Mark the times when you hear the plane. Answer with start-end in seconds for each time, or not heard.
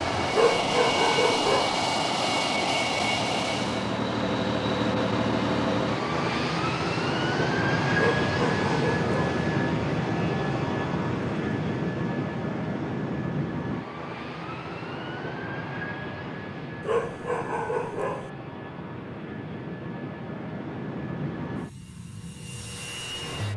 0.0-23.5.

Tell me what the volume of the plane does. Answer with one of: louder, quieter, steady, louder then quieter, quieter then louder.
quieter.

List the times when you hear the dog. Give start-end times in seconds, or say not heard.
0.3-1.8, 8.0-9.4, 16.8-18.3.